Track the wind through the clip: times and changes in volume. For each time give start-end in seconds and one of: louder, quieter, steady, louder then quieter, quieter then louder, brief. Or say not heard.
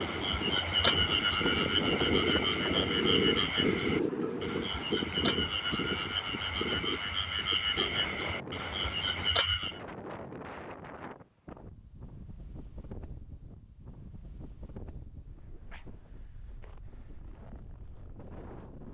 0.0-18.8 quieter.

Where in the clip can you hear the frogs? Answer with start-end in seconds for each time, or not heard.
0.0-9.8.